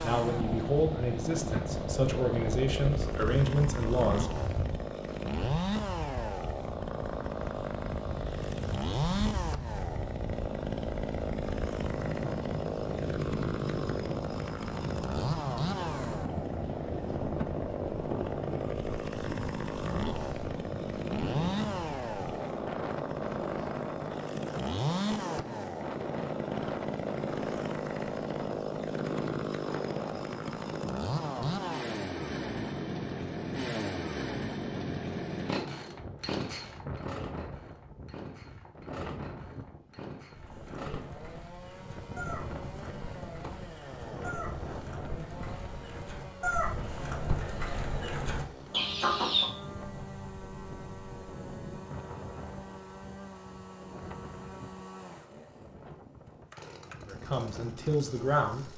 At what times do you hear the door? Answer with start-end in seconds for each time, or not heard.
not heard.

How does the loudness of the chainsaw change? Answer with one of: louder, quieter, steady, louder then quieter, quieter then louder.
quieter.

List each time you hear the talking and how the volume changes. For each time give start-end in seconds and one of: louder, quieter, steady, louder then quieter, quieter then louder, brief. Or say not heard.
0.0-4.3 quieter then louder
57.0-58.7 brief.